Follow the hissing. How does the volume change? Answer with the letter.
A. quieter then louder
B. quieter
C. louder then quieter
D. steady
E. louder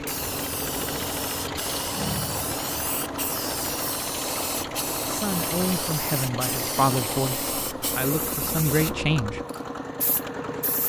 D.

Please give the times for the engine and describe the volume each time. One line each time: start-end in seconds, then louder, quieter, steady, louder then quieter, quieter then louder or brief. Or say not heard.
0.0-10.8 steady.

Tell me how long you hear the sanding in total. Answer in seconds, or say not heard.
not heard.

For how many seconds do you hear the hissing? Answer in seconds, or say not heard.
11 s.